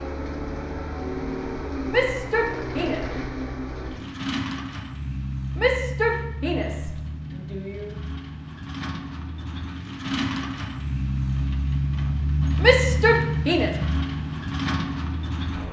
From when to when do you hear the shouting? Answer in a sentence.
You can hear the shouting from 1.9 to 3.0 s, from 5.5 to 7.9 s and from 12.6 to 13.7 s.